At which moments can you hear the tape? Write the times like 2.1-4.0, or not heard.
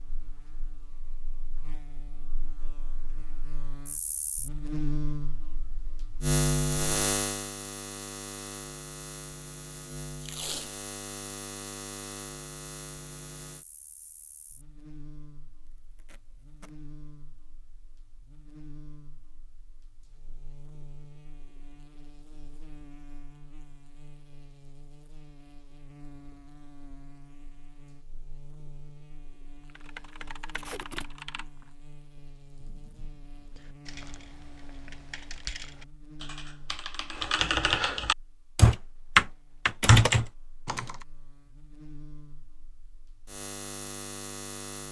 10.2-10.8, 15.9-16.7, 30.5-31.2.